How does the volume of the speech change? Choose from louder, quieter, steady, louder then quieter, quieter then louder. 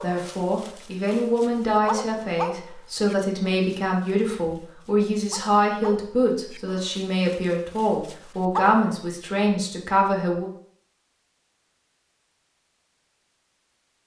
steady.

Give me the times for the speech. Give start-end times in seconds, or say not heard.
0.0-10.5.